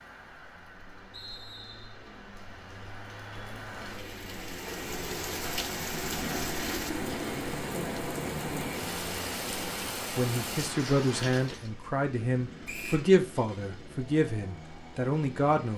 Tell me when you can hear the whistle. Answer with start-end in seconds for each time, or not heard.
1.1-2.0, 12.7-13.1.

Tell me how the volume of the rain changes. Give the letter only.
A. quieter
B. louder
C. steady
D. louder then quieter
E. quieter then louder
B.